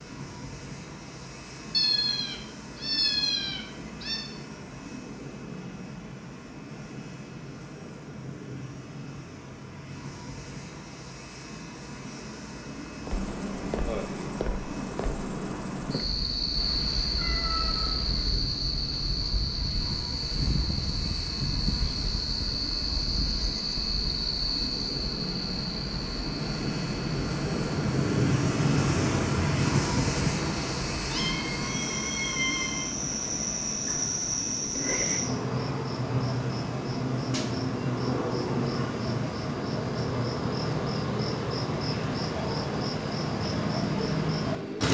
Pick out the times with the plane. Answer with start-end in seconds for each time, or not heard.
0.0-44.8.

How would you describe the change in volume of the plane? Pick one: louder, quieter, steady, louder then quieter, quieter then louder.
louder then quieter.